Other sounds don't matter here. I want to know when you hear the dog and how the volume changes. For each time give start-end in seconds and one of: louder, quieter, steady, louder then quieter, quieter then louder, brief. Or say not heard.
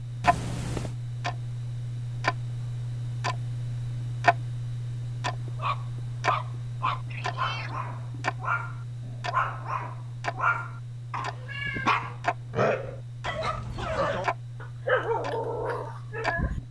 5.5-16.6 steady.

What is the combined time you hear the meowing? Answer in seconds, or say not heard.
3 s.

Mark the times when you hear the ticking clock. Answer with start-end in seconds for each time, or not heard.
0.0-16.6.